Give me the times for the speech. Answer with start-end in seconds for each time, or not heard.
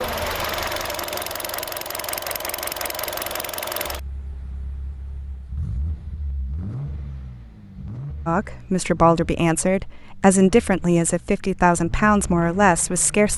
8.2-13.3.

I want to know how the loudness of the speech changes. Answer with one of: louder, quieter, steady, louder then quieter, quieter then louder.
steady.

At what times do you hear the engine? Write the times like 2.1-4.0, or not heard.
0.0-13.3.